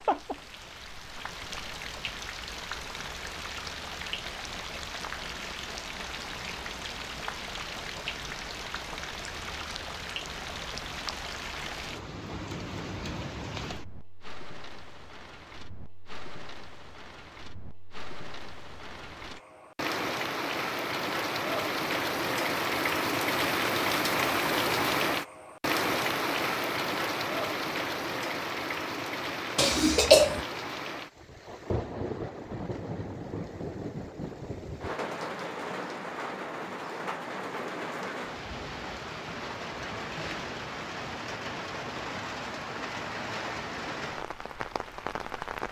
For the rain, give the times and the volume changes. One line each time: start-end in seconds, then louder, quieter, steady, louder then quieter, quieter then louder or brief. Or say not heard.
0.0-45.6 louder then quieter.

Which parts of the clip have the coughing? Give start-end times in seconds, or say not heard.
29.6-30.4.